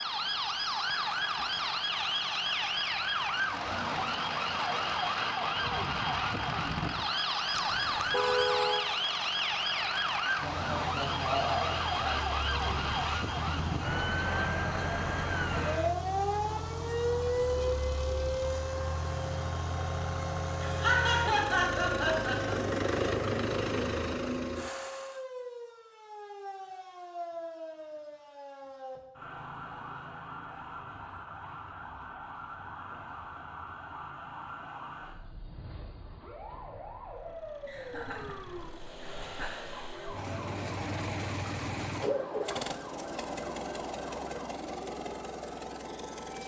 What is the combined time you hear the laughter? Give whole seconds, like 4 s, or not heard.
6 s.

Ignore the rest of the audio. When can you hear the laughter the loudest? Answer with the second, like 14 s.
21 s.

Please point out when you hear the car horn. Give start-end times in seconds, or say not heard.
7.5-8.8.